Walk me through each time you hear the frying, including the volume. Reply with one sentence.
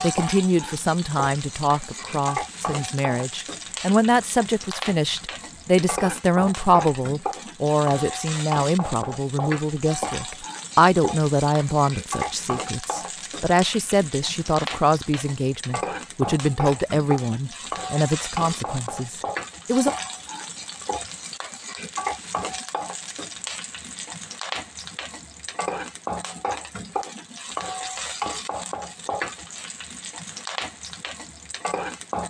You can hear the frying from 0.0 to 32.2 s, at a steady volume.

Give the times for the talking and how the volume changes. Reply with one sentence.
You can hear the talking from 0.0 to 19.9 s, at a steady volume.